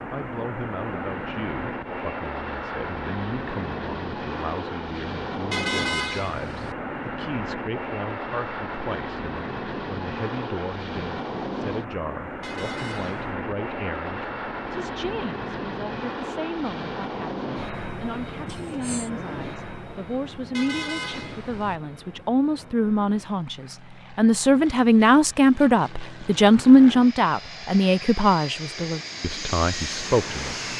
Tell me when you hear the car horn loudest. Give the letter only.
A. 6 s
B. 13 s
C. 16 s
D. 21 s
A.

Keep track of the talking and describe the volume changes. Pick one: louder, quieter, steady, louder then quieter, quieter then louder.
louder.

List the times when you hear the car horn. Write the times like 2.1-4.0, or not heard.
5.5-6.8, 12.4-13.3, 20.5-21.8.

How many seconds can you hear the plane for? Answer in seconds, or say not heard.
31 s.